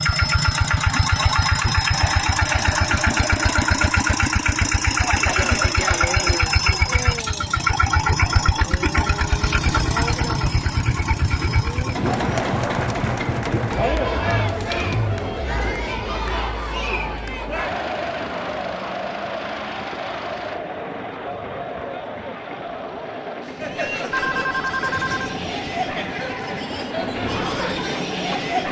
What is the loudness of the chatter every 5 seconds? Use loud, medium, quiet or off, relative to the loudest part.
off, off, loud, loud, medium, loud.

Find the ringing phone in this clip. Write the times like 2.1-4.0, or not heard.
24.1-25.4.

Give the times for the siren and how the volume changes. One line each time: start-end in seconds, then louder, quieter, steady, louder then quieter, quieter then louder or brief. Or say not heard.
not heard.